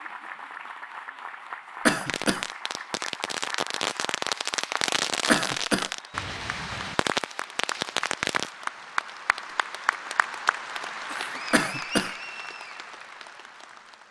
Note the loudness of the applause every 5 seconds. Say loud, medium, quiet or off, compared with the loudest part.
medium, loud, loud.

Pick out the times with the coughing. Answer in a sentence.
You can hear the coughing from 1.9 to 2.5 s, from 5.2 to 5.9 s and from 11.5 to 12.1 s.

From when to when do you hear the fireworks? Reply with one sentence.
You can hear the fireworks from 2.0 to 8.5 s.